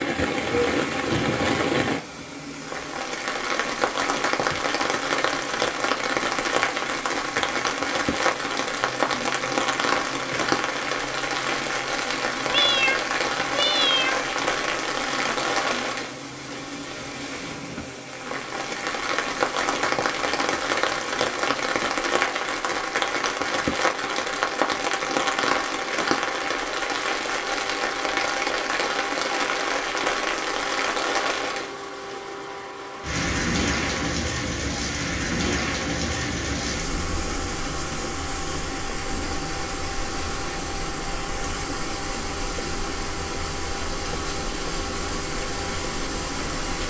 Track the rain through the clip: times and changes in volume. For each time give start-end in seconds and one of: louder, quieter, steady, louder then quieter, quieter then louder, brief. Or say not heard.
0.0-46.8 quieter.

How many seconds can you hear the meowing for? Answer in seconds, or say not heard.
2 s.